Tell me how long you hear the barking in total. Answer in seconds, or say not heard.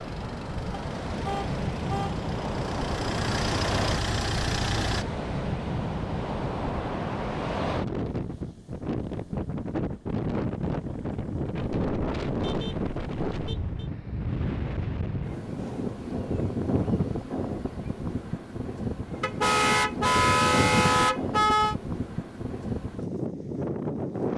not heard.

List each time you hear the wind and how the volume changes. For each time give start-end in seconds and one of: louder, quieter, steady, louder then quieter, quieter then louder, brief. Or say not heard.
0.0-24.3 steady.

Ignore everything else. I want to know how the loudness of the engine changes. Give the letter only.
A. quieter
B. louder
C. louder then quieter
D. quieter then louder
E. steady
B.